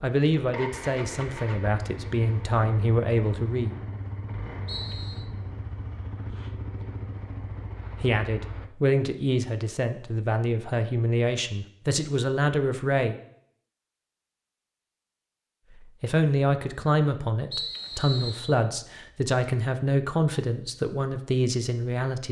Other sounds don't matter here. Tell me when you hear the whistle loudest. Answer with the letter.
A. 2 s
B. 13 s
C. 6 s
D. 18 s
D.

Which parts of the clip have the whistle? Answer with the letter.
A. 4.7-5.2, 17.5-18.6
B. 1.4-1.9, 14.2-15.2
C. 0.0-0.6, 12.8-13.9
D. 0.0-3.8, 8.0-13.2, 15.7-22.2
A.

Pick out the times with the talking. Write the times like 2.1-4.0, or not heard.
0.0-3.8, 8.0-13.2, 15.7-22.2.